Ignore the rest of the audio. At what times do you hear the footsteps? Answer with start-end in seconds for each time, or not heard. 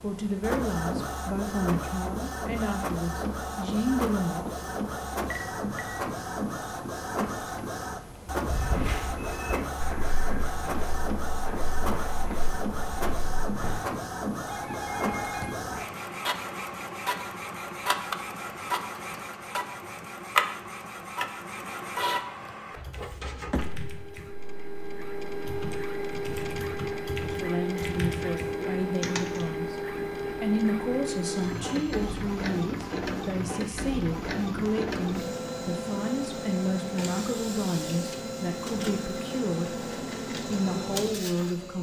8.4-13.8.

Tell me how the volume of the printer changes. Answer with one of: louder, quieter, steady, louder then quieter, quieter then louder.
steady.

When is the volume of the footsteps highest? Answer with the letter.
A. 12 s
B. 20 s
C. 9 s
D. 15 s
C.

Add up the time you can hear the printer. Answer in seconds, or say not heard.
42 s.